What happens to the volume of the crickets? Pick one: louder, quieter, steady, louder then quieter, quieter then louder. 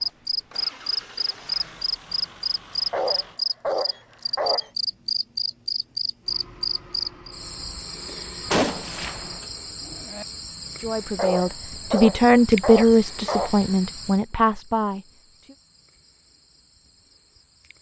quieter.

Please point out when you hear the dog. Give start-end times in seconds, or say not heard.
2.7-4.7, 10.9-13.7.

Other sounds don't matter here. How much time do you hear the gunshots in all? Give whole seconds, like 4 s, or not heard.
2 s.